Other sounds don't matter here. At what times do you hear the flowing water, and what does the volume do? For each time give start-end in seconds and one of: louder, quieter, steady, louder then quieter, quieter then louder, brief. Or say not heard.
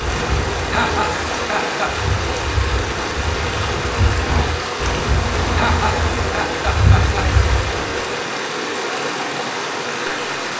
0.0-10.5 steady.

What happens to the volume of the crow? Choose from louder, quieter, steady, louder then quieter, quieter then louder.
louder.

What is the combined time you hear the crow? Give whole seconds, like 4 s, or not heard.
8 s.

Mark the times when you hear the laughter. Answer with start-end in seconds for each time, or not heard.
0.7-1.9, 5.5-7.2.